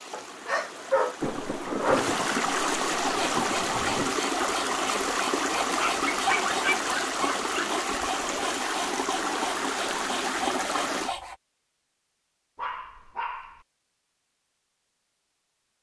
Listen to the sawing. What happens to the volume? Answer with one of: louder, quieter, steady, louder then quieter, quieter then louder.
steady.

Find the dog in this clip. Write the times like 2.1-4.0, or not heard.
0.1-2.1, 5.8-7.7, 12.6-13.7.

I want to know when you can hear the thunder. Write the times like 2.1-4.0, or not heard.
1.2-4.2.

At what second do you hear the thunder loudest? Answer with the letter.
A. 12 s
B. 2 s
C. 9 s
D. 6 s
B.